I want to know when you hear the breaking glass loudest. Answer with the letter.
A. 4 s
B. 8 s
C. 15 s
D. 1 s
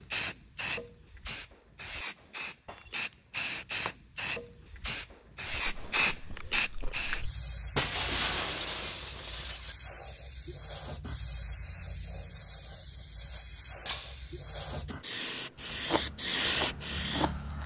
B.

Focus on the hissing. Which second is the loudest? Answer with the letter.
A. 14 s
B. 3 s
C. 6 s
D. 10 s
C.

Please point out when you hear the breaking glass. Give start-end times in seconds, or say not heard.
2.6-3.2, 7.8-9.8, 13.8-14.3.